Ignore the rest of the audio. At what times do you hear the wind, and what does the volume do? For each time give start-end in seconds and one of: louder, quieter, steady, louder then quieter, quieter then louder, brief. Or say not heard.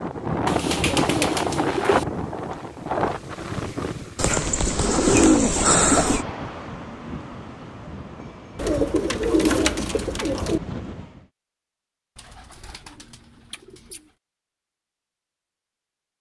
0.0-11.2 quieter.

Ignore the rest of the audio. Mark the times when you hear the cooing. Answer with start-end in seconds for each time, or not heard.
0.5-2.0, 4.2-6.2, 8.6-10.6, 12.2-14.0.